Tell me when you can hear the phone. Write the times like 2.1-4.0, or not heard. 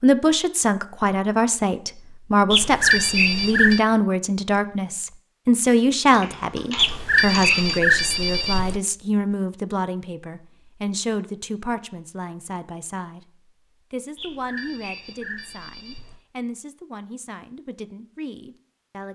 2.5-3.8, 6.8-8.8, 14.2-16.2.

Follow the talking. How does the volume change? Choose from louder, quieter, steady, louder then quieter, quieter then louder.
quieter.